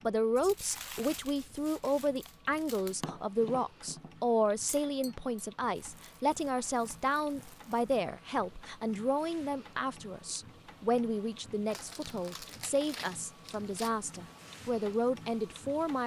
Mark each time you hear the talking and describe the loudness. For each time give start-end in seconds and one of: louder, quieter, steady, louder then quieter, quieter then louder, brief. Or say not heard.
0.0-16.0 steady.